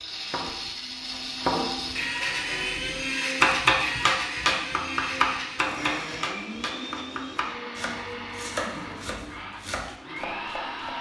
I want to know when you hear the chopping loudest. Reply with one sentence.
The loudest moment of the chopping is at 4 seconds.